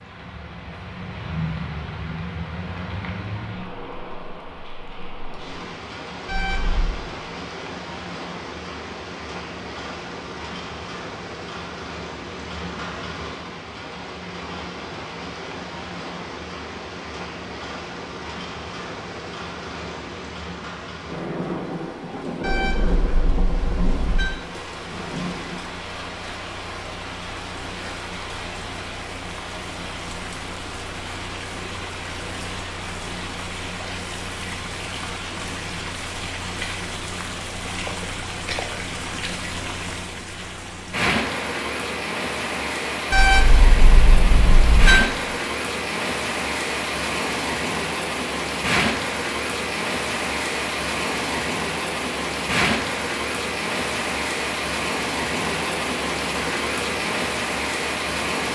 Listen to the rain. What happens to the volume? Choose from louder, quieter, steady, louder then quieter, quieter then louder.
louder.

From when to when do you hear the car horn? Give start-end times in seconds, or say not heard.
6.2-7.0, 22.4-24.3, 43.1-45.0.